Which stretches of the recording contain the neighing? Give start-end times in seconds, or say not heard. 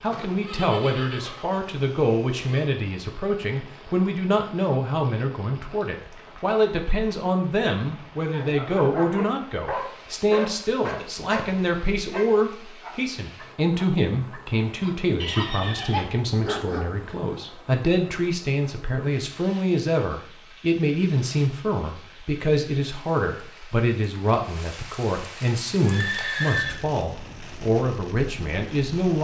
0.1-2.7, 15.2-16.2, 25.8-26.8.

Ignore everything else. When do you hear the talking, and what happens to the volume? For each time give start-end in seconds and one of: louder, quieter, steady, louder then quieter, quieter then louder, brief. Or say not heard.
0.0-29.1 steady.